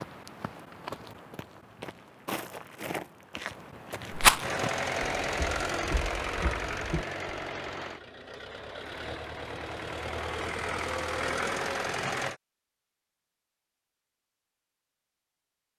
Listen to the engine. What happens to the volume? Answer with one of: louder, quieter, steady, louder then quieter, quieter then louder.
quieter then louder.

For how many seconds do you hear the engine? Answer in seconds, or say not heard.
8 s.